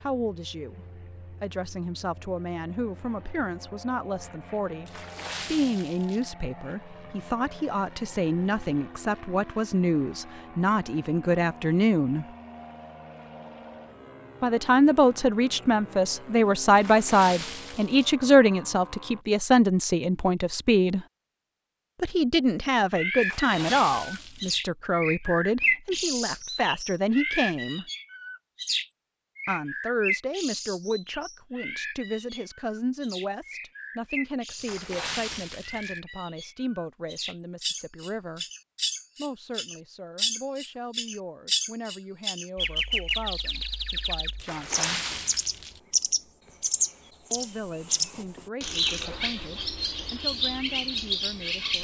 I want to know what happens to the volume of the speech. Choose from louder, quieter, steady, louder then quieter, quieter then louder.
louder then quieter.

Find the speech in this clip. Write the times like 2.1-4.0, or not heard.
0.0-12.2, 14.4-21.1, 22.0-27.9, 29.4-38.5, 39.1-45.0, 47.3-51.7.